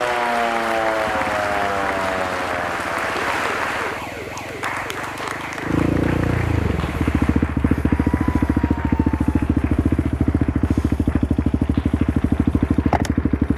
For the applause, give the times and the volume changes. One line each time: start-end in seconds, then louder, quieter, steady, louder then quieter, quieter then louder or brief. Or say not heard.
0.0-13.5 quieter.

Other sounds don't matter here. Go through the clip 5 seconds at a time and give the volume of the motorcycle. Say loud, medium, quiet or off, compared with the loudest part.
quiet, loud, loud.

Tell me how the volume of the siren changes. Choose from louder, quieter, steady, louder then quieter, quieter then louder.
quieter.